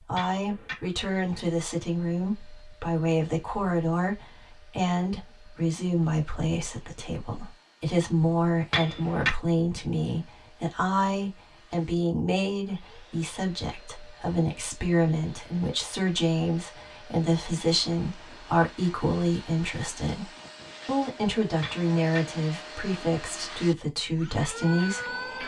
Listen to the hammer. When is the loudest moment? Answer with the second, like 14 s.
9 s.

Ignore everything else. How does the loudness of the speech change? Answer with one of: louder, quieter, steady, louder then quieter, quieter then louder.
steady.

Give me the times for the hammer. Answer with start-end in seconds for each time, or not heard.
0.1-0.8, 8.7-9.3, 21.6-22.2.